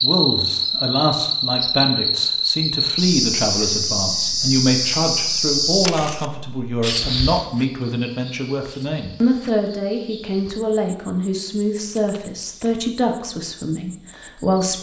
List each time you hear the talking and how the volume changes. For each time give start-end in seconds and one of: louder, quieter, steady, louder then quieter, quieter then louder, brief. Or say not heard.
0.0-14.7 steady.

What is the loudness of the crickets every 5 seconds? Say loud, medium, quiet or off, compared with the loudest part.
loud, medium, quiet.